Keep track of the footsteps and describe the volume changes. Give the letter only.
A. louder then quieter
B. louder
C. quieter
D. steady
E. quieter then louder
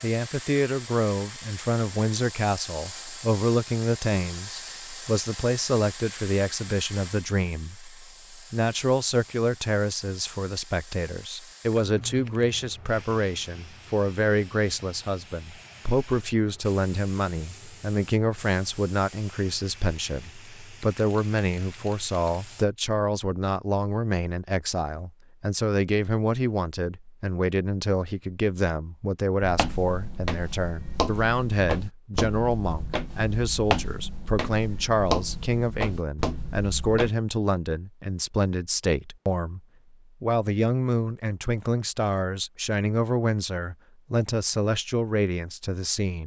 D.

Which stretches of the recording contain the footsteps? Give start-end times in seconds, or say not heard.
29.4-37.1.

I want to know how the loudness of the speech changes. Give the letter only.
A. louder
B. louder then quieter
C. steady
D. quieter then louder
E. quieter
C.